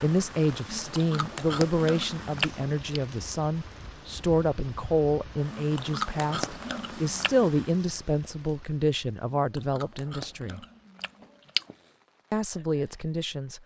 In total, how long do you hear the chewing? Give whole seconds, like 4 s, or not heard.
7 s.